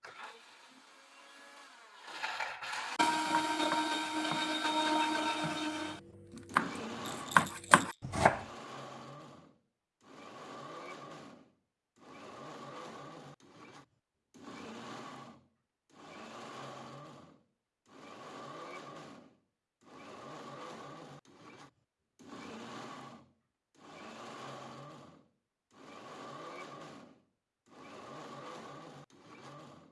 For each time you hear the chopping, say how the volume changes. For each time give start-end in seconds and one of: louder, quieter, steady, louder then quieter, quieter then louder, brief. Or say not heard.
3.1-8.4 quieter then louder.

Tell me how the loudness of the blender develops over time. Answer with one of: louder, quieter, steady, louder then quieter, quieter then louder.
quieter.